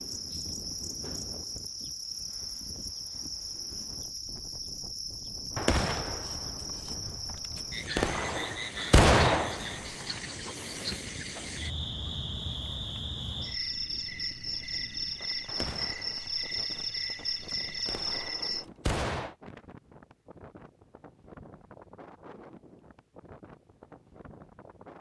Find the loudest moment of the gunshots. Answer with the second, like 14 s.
9 s.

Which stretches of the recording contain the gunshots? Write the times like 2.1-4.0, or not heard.
5.5-10.2, 15.4-19.4.